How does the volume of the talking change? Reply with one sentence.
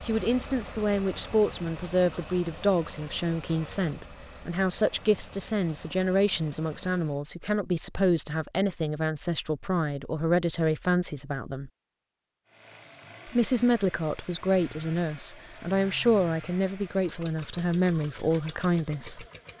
The loudness of the talking stays about the same.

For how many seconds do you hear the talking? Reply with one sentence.
The talking can be heard for 18 seconds in total.